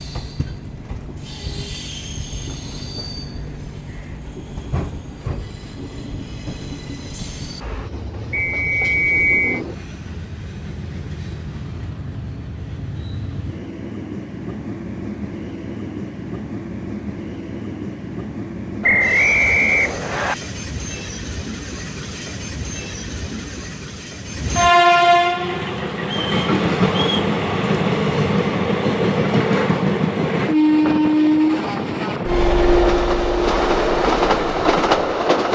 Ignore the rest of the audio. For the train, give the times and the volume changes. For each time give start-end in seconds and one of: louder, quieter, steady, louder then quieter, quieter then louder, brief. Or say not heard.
0.0-35.5 louder.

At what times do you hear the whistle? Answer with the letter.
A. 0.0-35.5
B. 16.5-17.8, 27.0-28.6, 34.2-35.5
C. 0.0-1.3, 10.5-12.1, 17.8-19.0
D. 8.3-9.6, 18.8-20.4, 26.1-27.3
D.